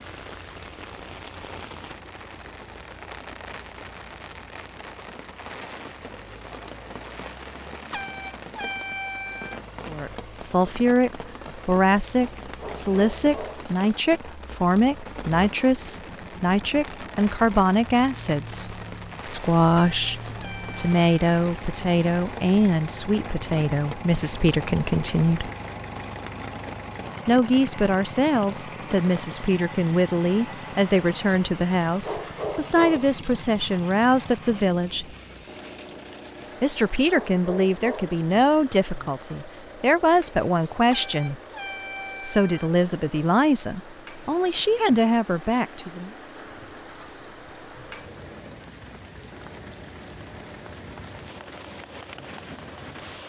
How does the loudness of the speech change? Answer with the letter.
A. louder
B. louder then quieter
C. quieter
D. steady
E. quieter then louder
D.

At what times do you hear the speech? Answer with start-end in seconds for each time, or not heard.
9.8-25.5, 27.2-35.0, 36.6-41.4, 42.2-46.1.